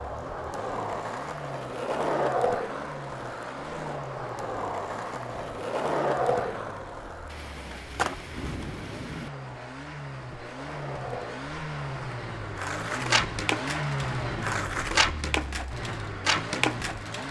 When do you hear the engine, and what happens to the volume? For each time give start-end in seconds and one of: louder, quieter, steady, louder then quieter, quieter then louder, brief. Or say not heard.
0.0-17.2 louder.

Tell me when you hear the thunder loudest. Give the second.
9 s.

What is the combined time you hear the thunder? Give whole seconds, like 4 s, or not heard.
2 s.